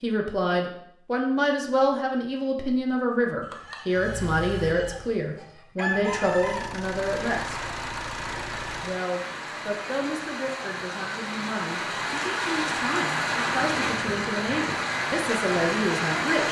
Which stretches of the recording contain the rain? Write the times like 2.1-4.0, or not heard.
7.0-16.4.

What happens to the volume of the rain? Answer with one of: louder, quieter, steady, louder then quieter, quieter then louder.
louder.